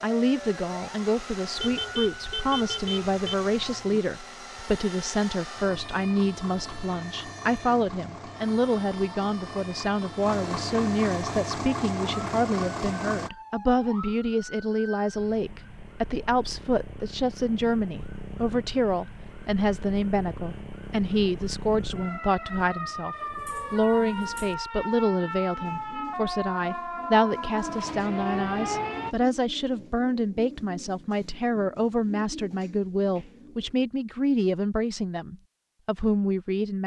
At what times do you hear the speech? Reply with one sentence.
You can hear the speech from 0.0 to 36.8 s.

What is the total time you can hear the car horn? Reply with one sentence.
You can hear the car horn for 3 seconds altogether.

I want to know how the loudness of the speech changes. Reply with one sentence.
The volume of the speech stays about the same.